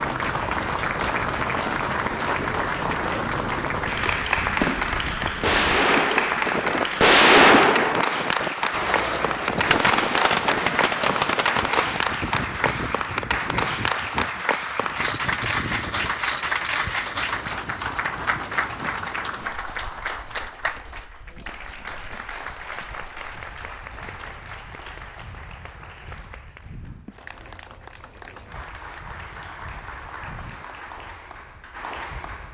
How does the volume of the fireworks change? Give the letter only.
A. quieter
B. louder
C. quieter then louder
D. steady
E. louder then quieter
E.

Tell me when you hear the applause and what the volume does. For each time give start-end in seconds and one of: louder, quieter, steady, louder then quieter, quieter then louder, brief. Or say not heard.
0.0-32.5 quieter.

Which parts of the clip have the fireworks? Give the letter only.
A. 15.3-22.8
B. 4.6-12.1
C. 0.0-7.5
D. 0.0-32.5
B.